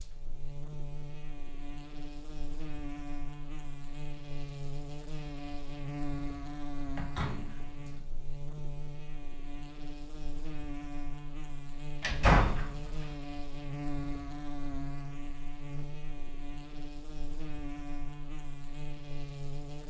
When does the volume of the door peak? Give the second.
12 s.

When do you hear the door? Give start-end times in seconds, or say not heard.
7.0-8.1, 12.0-13.1.